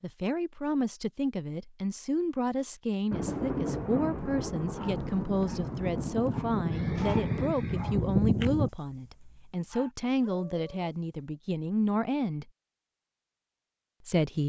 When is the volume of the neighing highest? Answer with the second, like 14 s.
8 s.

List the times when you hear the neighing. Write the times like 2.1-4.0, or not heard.
6.7-8.7.